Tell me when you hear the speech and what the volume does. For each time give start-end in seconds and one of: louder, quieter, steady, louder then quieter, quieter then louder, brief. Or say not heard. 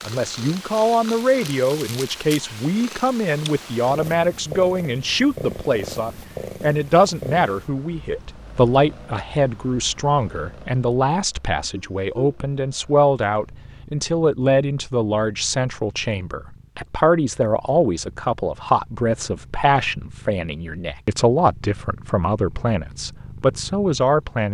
0.1-24.4 steady.